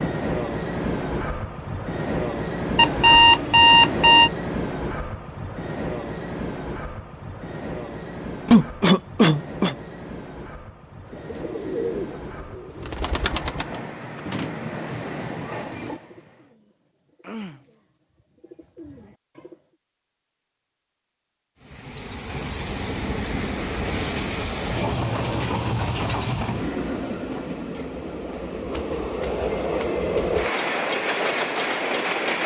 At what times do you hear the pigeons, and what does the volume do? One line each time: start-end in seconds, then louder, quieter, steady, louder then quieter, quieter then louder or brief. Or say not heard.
11.1-19.6 quieter.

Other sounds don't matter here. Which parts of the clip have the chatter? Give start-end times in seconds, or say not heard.
not heard.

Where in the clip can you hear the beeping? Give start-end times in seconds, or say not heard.
2.8-4.3.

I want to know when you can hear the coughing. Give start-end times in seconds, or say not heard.
8.4-9.8.